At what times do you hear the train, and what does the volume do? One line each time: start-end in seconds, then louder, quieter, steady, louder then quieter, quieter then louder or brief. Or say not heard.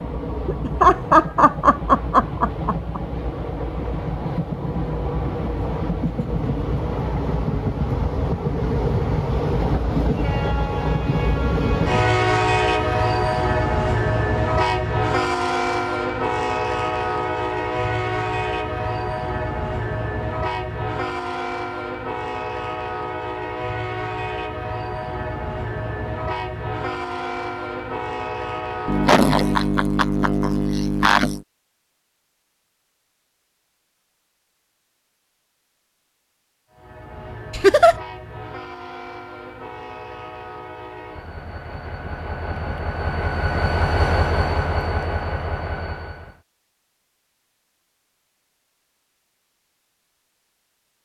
0.0-29.8 louder then quieter
36.7-46.4 louder.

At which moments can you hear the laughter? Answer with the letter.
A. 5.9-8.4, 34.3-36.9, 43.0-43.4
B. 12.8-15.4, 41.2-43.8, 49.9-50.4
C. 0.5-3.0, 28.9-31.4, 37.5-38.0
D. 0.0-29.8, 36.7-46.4
C.